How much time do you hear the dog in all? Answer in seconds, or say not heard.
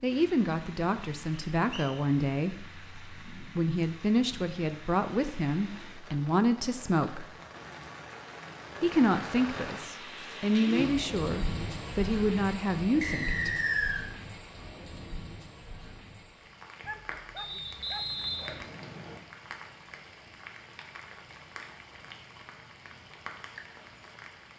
2 s.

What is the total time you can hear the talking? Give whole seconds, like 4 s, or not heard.
12 s.